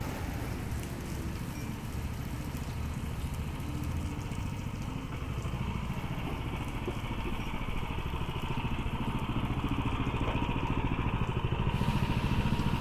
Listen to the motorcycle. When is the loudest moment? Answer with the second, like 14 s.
12 s.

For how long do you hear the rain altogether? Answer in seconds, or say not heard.
13 s.